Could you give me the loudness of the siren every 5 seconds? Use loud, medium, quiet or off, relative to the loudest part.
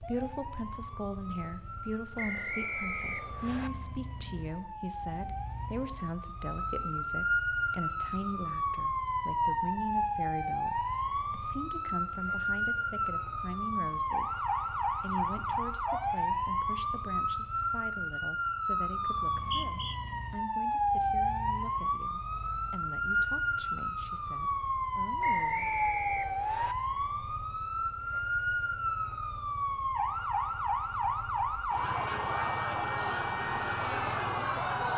quiet, loud, loud, loud, loud, loud, loud.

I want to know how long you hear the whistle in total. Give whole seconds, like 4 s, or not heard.
4 s.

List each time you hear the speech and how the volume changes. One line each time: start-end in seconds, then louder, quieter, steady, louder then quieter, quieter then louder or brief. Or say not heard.
0.0-25.6 quieter.